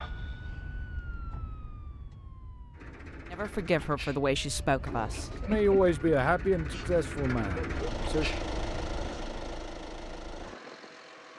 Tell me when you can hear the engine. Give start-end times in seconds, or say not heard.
2.7-11.3.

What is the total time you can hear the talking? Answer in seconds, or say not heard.
5 s.